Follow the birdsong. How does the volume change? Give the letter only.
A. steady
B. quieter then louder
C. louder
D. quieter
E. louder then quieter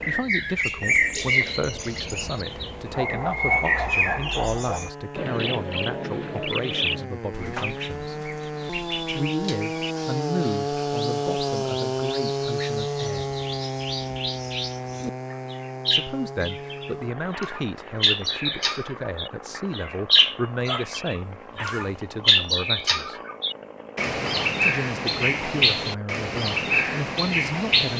B.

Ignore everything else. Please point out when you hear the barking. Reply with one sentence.
The barking can be heard from 2.9 to 4.9 s and from 20.6 to 22.1 s.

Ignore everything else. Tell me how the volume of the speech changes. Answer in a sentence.
The loudness of the speech stays about the same.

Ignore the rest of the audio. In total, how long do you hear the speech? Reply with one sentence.
You can hear the speech for 23 seconds altogether.